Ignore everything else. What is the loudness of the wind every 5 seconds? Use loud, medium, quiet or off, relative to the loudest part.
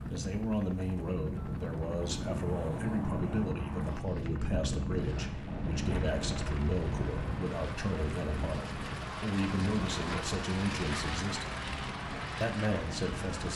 loud, loud, medium.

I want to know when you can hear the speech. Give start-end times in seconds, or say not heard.
0.1-11.6, 12.4-13.5.